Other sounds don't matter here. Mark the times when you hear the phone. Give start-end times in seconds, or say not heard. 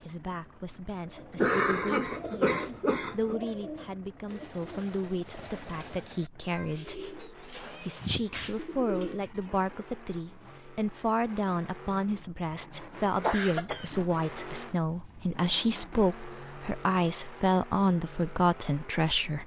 not heard.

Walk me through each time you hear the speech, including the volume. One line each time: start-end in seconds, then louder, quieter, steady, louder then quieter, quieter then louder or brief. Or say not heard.
0.0-19.4 louder.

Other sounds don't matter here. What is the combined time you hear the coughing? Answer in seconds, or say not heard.
3 s.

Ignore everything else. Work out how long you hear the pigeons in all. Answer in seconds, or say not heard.
9 s.